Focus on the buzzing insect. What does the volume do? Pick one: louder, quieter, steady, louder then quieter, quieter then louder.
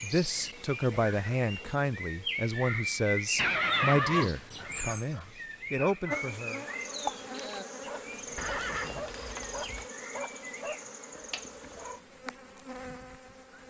quieter.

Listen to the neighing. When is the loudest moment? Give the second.
4 s.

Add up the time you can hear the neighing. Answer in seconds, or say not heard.
3 s.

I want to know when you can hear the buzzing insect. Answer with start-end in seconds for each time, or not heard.
6.1-13.6.